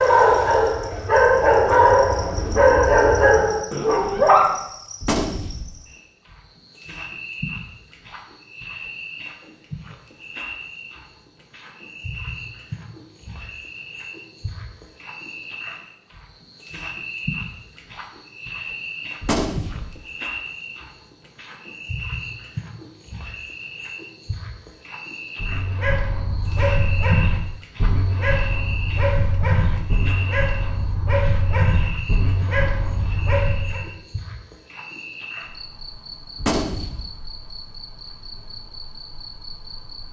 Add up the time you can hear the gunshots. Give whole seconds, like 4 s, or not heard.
2 s.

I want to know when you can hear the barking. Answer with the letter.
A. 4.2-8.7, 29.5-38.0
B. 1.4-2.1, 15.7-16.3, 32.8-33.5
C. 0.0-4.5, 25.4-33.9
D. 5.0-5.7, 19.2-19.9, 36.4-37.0
C.